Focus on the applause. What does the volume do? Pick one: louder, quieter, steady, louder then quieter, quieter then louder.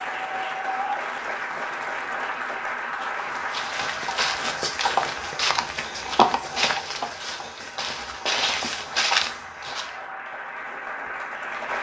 quieter then louder.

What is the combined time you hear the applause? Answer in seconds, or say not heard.
12 s.